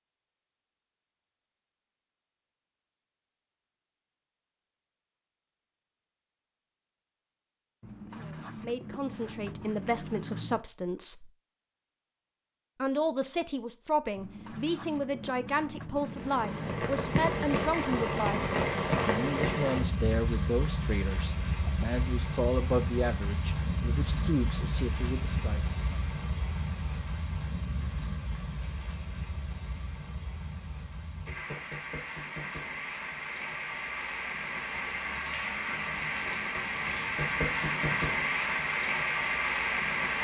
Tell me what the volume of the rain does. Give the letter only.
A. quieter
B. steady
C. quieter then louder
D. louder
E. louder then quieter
C.